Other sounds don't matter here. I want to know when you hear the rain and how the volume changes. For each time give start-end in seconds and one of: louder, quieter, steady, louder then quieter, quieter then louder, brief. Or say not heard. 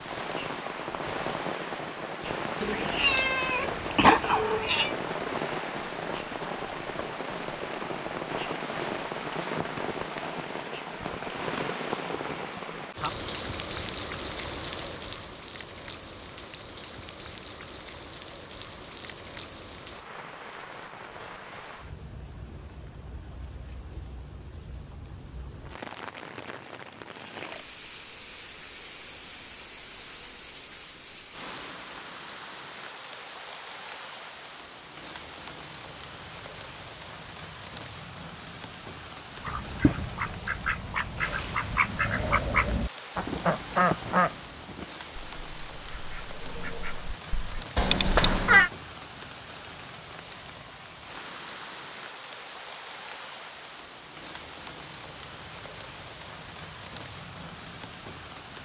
0.0-58.6 quieter.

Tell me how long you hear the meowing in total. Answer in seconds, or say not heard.
3 s.